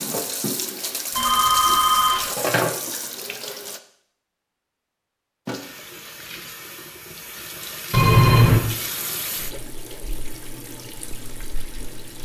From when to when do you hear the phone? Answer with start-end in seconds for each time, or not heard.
1.1-2.3, 7.9-8.6.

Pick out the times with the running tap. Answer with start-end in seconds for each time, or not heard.
0.0-3.8, 5.5-12.2.